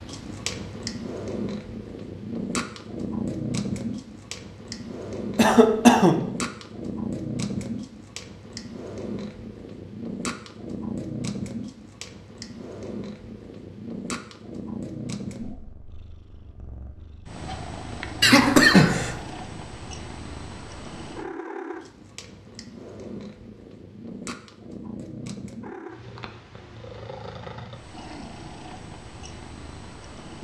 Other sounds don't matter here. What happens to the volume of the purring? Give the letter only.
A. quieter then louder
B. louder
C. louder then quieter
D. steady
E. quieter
E.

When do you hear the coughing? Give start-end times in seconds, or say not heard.
5.3-6.2, 18.2-19.1.